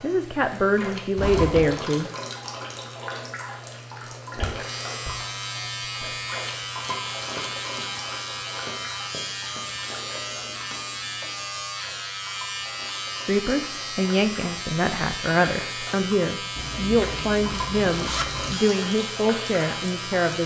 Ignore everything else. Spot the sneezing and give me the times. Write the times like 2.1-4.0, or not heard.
not heard.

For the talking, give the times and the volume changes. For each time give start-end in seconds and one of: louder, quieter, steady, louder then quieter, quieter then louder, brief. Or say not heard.
0.0-2.1 brief
13.2-20.4 steady.